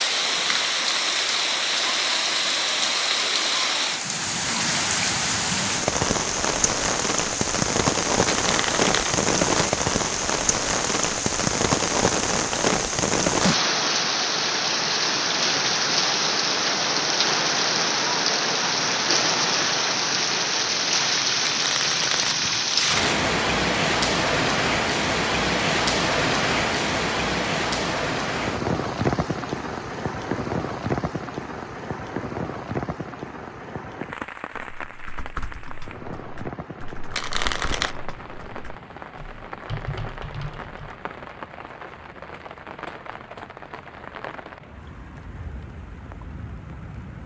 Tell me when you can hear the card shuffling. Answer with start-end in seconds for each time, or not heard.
8.2-9.2, 21.4-23.1, 37.1-38.0.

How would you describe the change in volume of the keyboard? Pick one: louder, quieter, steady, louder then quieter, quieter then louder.
quieter then louder.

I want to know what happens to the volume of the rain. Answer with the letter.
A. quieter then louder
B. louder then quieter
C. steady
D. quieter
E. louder
D.